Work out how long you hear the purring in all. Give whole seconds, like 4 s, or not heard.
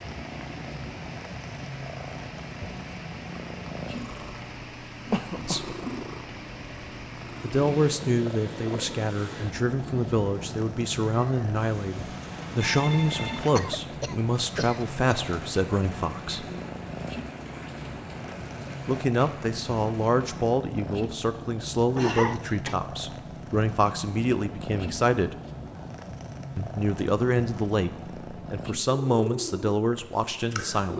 31 s.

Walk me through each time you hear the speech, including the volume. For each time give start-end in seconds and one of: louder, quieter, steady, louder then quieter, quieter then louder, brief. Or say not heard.
5.3-5.8 brief
7.4-16.4 steady
18.9-25.4 steady
26.6-30.9 steady.